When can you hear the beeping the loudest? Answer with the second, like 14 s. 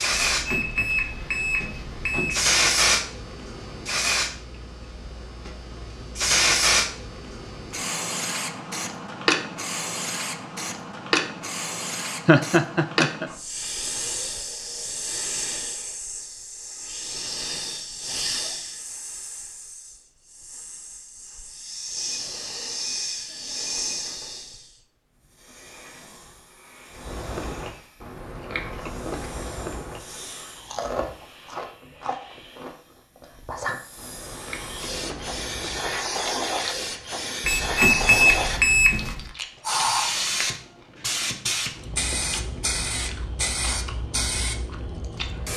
38 s.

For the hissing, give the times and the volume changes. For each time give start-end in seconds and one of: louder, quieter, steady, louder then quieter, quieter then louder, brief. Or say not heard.
0.0-45.5 quieter then louder.